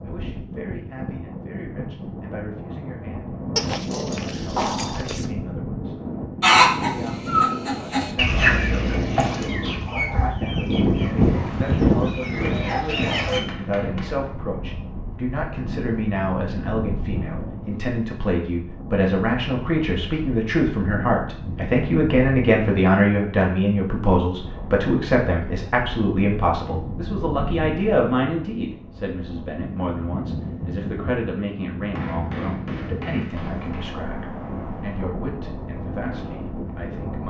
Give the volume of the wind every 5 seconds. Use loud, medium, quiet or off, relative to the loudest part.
medium, medium, loud, medium, medium, medium, medium, medium.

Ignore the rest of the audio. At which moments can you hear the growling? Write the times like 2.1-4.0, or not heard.
3.5-5.3.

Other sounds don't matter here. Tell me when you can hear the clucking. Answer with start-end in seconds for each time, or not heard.
6.4-13.4.